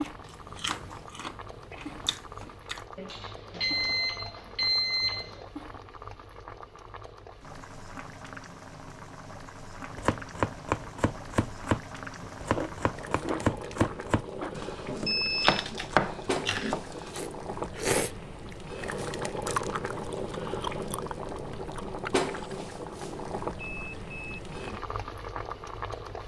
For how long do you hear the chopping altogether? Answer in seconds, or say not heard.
7 s.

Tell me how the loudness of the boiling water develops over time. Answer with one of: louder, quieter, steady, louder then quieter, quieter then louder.
louder.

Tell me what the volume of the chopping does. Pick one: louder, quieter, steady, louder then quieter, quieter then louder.
quieter then louder.